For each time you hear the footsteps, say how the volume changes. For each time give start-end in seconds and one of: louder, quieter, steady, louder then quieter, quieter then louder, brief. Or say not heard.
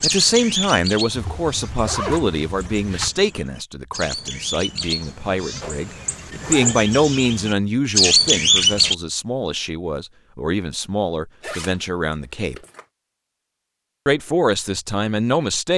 not heard.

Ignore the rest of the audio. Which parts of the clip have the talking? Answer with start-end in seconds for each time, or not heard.
0.0-12.6, 14.1-15.7.